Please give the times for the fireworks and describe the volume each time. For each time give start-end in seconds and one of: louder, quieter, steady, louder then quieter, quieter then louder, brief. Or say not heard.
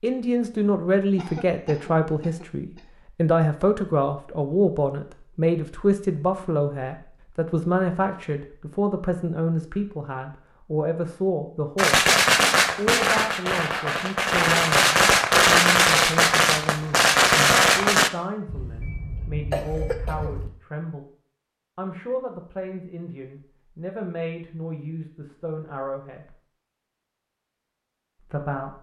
11.8-18.1 quieter then louder.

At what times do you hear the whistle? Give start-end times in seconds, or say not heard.
not heard.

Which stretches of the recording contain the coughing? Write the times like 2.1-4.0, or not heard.
1.1-2.9, 18.4-20.5.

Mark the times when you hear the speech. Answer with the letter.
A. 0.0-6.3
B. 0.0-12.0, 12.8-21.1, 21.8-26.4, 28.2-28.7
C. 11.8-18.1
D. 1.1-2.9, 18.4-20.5
B.